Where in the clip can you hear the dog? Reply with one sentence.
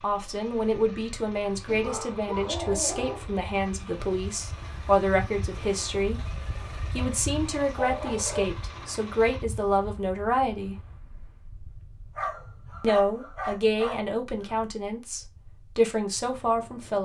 You can hear the dog from 1.6 to 3.3 s, from 6.5 to 8.5 s and from 12.2 to 14.6 s.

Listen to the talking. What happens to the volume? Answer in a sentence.
The volume of the talking stays about the same.